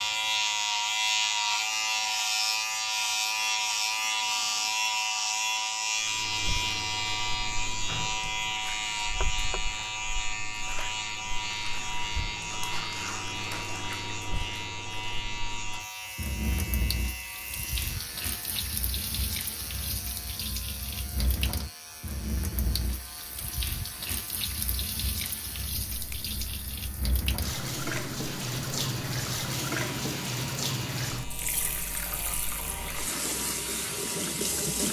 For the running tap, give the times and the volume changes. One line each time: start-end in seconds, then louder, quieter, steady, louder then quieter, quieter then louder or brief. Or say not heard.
6.0-34.8 louder.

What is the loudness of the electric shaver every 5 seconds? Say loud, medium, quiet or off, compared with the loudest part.
loud, loud, medium, quiet, quiet, quiet, quiet.